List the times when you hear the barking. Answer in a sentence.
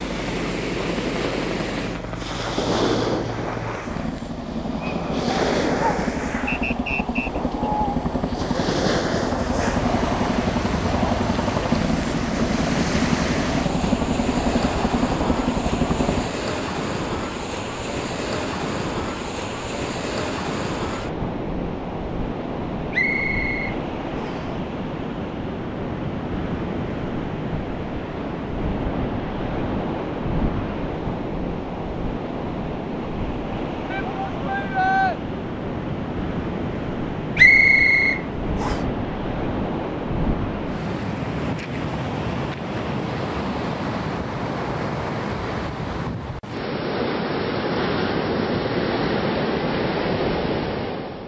You can't hear the barking here.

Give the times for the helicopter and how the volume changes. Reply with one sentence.
You can hear the helicopter from 0.0 to 16.3 s, getting louder.